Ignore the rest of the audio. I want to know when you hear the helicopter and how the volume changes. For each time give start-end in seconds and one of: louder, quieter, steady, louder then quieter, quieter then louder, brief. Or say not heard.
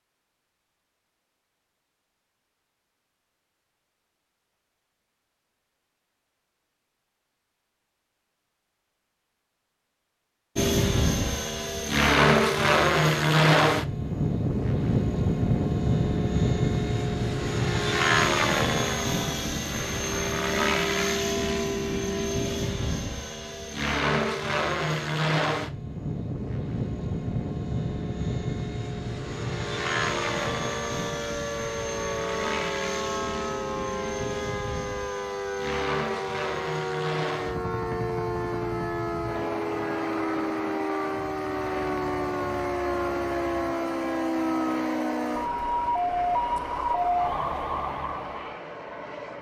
10.6-49.3 quieter.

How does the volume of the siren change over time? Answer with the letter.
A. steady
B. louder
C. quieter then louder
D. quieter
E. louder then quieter
B.